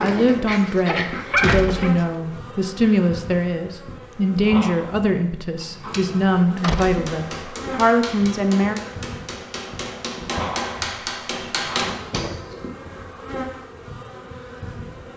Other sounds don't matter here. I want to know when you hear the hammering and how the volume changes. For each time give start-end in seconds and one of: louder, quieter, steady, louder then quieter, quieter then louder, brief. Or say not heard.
6.5-12.6 louder.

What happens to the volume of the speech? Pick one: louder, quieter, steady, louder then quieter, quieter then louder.
steady.